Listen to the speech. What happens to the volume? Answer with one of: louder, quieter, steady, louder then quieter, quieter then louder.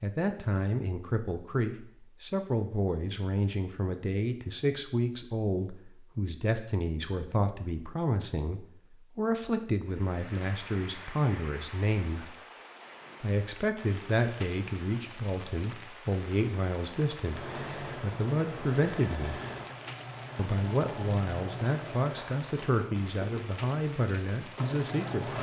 steady.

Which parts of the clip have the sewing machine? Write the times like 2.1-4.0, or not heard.
17.1-25.3.